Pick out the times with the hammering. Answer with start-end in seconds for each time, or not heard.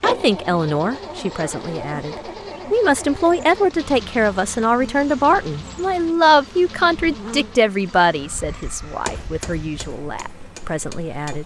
9.1-11.4.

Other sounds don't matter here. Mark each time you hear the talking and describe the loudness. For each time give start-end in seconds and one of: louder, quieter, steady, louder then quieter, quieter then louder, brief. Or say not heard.
0.0-11.4 louder then quieter.